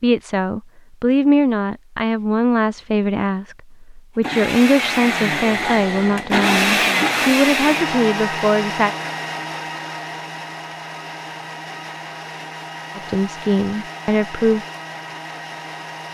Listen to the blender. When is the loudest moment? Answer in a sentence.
The loudest moment of the blender is at 7 seconds.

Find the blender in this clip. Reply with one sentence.
The blender can be heard from 4.2 to 16.0 s.